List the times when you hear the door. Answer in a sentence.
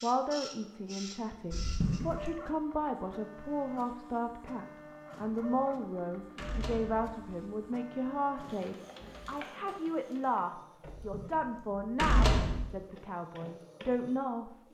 The door can be heard from 1.5 to 2.4 s, from 5.5 to 7.7 s and from 10.8 to 12.7 s.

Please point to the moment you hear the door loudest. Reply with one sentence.
The volume of the door peaks at 12 seconds.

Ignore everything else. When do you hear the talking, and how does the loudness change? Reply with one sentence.
You can hear the talking from 0.0 to 14.6 s, at a steady volume.